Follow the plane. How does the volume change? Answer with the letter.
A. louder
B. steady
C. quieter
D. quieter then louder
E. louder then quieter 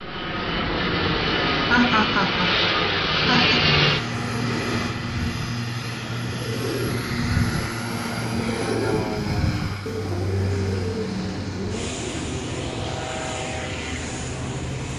C.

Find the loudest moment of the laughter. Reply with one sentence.
The loudest moment of the laughter is at 2 seconds.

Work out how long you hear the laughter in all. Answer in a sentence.
The laughter can be heard for 2 seconds in total.